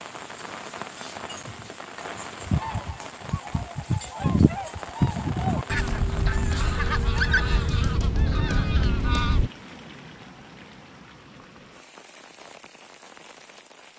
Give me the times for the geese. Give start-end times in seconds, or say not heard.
2.4-9.5.